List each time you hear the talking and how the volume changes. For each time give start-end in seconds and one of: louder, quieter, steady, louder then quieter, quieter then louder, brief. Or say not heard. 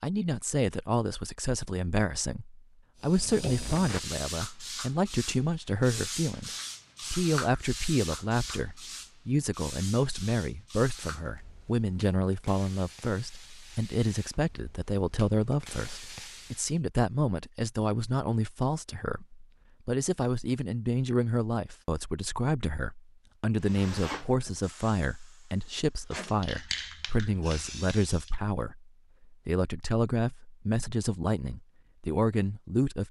0.0-33.0 steady.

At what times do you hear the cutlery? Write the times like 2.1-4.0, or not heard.
not heard.